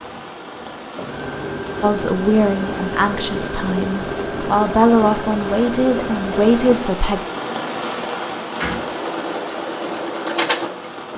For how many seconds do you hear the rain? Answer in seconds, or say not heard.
11 s.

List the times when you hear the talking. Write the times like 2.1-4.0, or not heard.
1.8-7.2.